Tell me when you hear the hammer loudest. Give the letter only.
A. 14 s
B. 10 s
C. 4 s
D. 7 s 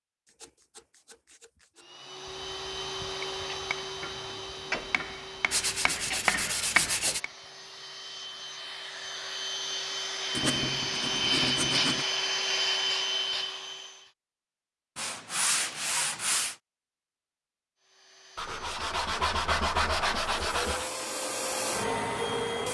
D.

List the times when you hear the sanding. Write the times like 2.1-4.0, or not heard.
0.2-1.9, 5.5-7.2, 10.3-12.1, 14.9-16.6, 18.4-20.9.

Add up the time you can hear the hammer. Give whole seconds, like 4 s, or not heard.
4 s.